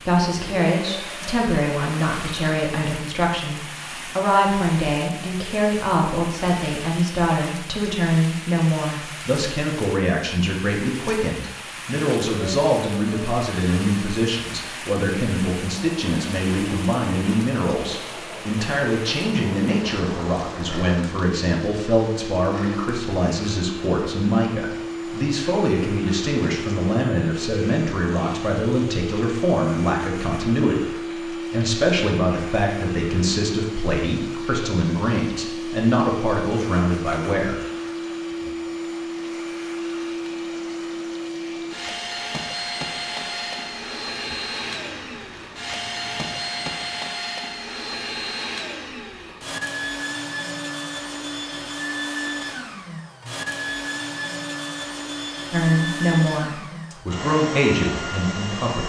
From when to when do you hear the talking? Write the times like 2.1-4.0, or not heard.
0.0-37.6, 55.5-58.8.